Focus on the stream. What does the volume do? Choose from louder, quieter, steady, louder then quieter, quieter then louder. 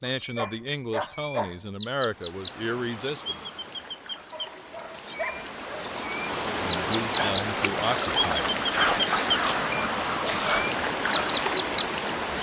louder.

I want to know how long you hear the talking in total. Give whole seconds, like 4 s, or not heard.
6 s.